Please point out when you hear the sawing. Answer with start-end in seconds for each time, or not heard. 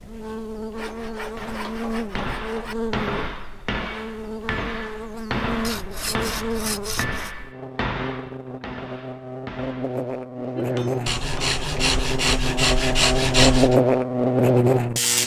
0.8-2.8, 5.6-7.3, 11.1-13.8.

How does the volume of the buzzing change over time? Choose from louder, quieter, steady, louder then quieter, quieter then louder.
louder.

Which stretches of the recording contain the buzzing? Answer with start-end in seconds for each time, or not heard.
0.0-15.2.